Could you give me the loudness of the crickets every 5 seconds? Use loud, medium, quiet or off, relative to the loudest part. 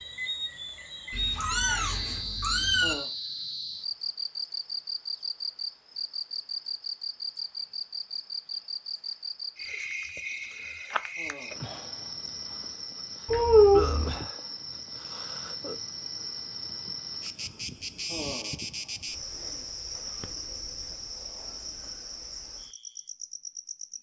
loud, loud, loud, loud, medium.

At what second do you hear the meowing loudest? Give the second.
14 s.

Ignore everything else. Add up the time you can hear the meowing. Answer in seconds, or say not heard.
3 s.